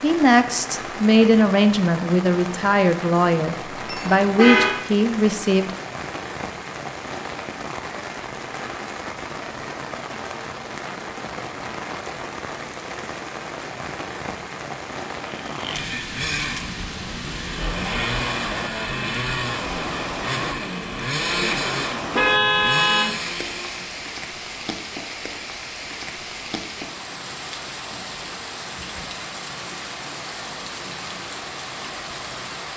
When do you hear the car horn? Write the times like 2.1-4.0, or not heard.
3.9-4.8, 22.1-23.1.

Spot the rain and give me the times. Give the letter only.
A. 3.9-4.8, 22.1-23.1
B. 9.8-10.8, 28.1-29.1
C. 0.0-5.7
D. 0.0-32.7
D.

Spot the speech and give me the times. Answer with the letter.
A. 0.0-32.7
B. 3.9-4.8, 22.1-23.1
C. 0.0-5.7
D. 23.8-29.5
C.